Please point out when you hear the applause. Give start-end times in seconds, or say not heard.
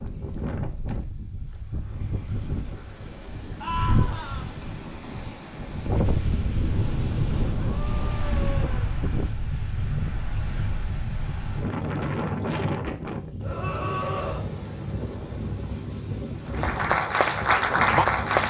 16.5-18.4.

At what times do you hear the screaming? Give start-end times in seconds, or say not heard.
3.6-4.5, 7.6-8.9, 13.4-14.4.